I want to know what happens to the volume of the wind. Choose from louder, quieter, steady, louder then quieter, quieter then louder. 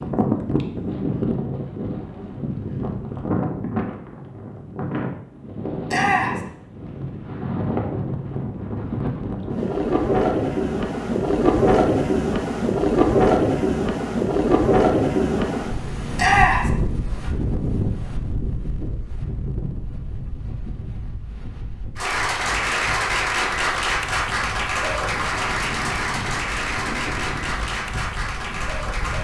louder then quieter.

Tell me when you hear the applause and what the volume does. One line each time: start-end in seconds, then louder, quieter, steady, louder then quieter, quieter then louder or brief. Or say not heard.
21.9-29.2 quieter.